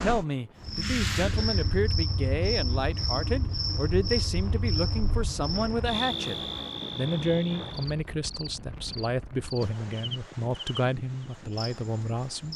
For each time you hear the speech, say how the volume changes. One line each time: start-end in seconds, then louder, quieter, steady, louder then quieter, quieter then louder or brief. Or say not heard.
0.0-12.5 steady.